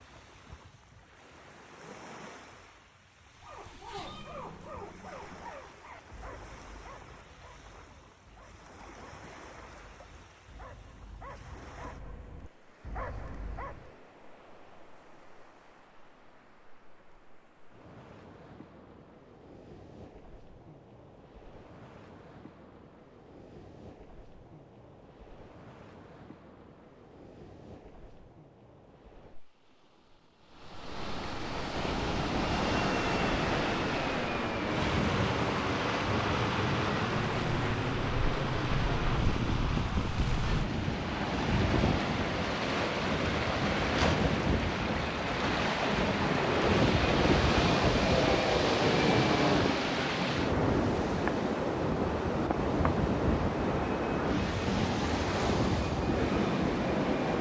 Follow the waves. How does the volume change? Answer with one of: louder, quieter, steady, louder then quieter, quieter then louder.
louder.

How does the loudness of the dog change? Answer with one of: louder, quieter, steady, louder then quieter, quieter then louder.
quieter then louder.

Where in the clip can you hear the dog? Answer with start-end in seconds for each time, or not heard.
3.4-13.9.